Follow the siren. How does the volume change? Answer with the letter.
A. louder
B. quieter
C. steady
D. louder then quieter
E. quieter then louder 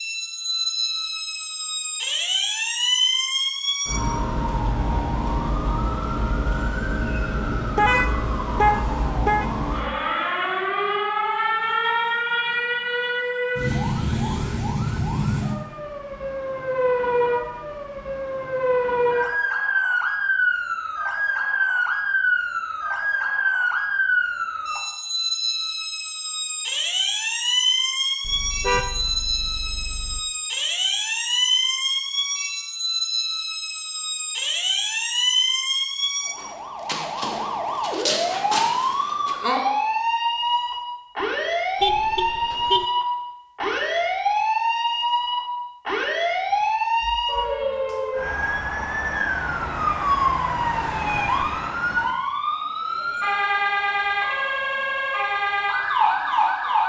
C.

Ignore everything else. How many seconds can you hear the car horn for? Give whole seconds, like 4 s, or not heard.
5 s.